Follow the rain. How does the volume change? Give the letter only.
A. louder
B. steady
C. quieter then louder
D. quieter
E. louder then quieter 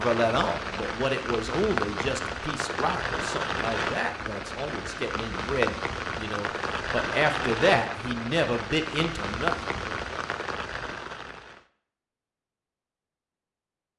B.